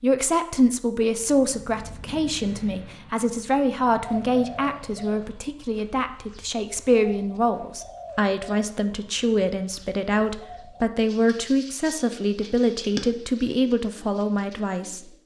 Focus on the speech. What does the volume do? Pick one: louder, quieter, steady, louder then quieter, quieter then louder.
steady.